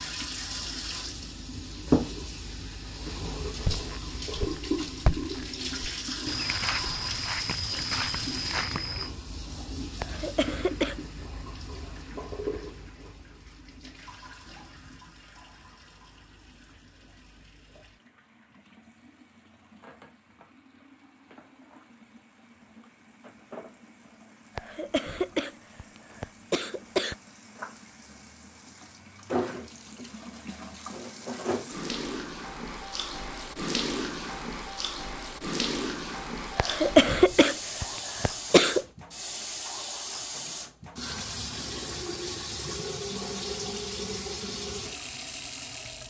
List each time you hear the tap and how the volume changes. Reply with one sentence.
You can hear the tap from 0.0 to 46.0 s, getting quieter then louder.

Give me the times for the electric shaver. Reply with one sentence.
You can't hear the electric shaver here.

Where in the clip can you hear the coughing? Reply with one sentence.
The coughing can be heard from 10.0 to 11.0 s, from 24.6 to 27.1 s and from 36.5 to 38.9 s.